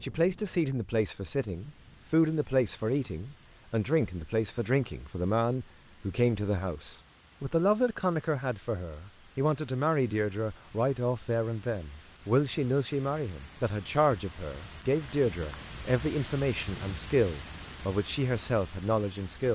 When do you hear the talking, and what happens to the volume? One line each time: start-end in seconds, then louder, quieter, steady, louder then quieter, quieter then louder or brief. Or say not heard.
0.0-19.4 steady.